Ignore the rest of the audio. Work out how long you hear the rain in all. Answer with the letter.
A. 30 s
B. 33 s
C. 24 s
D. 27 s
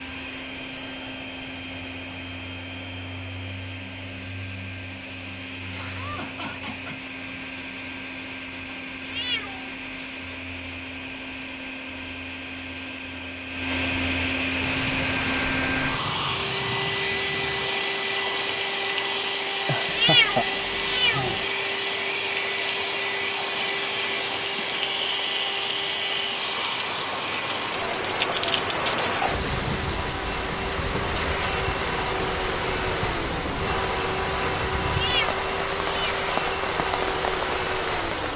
C.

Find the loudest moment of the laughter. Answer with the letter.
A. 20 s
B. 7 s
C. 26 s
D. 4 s
A.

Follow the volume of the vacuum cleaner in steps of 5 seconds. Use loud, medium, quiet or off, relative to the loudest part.
medium, medium, medium, loud, loud, loud, loud, loud.